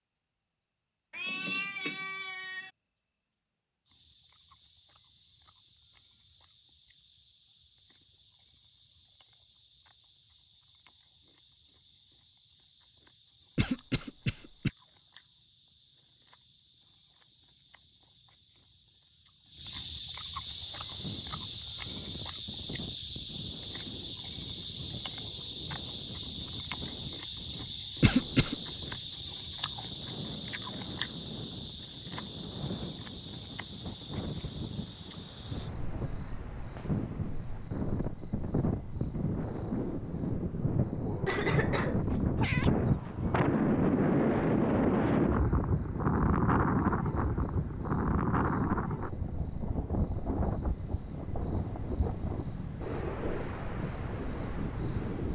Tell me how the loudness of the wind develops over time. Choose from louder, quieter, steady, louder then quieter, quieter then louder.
louder then quieter.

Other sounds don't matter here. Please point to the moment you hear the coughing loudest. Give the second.
28 s.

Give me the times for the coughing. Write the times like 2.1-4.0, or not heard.
13.6-14.7, 28.0-28.6, 41.2-42.5.